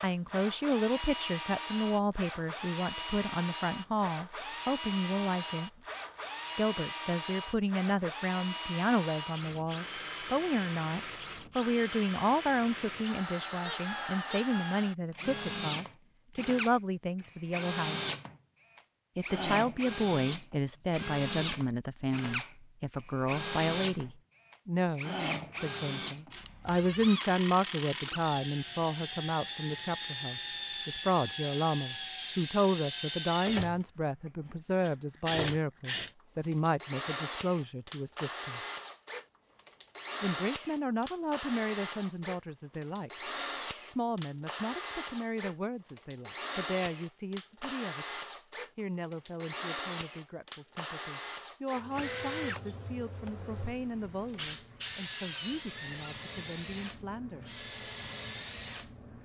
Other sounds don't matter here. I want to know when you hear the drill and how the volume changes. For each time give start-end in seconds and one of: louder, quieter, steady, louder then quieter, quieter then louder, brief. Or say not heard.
0.0-59.1 steady.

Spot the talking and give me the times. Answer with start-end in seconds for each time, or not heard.
0.0-5.7, 6.5-18.1, 19.1-38.6, 40.2-57.5.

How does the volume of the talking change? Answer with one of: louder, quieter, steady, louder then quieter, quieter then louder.
quieter.